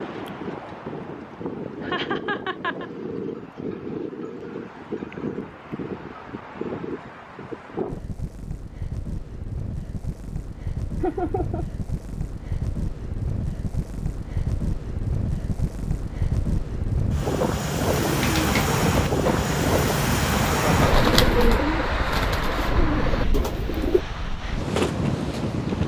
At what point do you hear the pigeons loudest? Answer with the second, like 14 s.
21 s.